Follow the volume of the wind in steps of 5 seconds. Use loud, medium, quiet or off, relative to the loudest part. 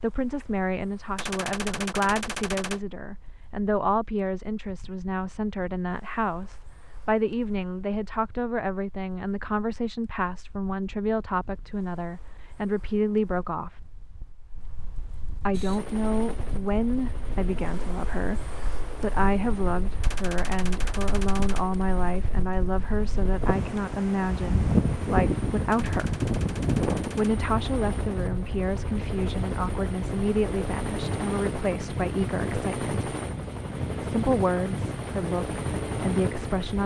quiet, quiet, quiet, quiet, loud, loud, medium, medium.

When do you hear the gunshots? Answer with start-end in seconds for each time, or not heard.
1.1-2.8, 20.0-21.6, 25.7-27.4.